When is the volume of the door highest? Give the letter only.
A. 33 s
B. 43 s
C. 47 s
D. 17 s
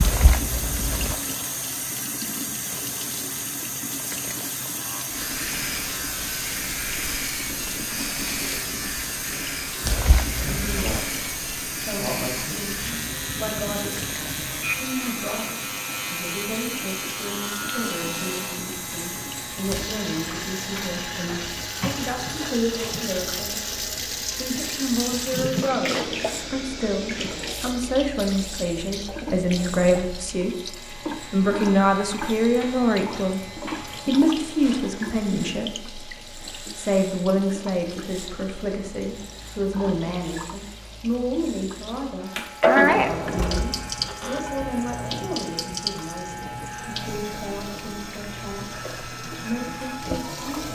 B.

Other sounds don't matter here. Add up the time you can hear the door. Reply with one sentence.
The door can be heard for 2 seconds in total.